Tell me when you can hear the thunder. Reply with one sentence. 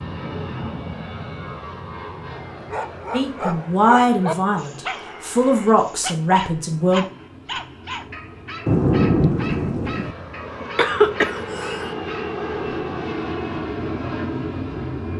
You can hear the thunder from 8.7 to 10.2 s.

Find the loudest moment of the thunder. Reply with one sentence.
The loudest moment of the thunder is at 9 seconds.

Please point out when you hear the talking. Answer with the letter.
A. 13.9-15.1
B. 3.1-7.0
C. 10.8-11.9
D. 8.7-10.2
B.